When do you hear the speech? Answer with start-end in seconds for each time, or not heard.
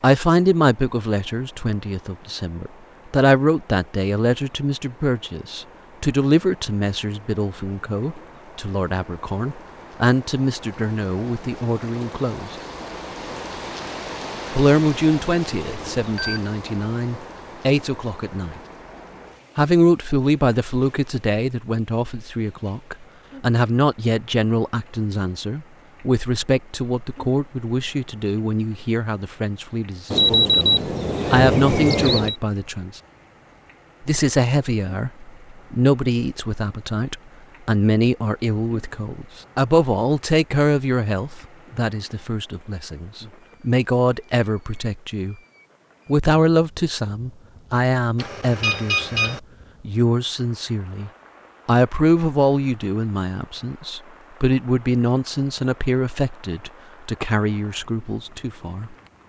0.0-12.6, 14.5-18.6, 19.6-33.0, 34.0-45.4, 46.0-59.0.